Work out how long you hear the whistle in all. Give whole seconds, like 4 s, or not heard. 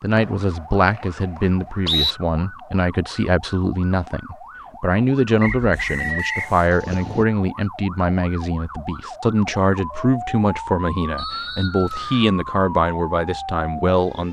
4 s.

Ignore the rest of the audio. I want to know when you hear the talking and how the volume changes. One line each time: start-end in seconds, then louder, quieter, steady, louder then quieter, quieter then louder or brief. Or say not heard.
0.0-14.2 steady.